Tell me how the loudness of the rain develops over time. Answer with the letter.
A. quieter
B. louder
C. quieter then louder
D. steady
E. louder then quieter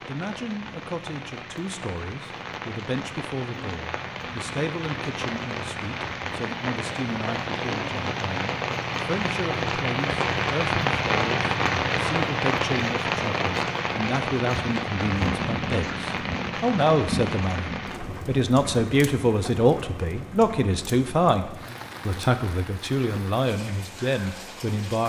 E.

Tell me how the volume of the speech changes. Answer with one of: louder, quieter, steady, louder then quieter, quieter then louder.
louder.